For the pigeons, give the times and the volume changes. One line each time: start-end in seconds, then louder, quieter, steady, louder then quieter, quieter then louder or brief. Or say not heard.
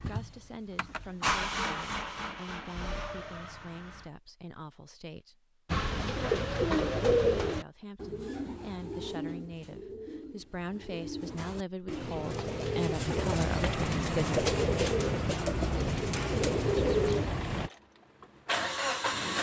5.7-17.7 quieter then louder.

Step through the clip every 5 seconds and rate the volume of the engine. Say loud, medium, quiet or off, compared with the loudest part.
loud, off, off, loud.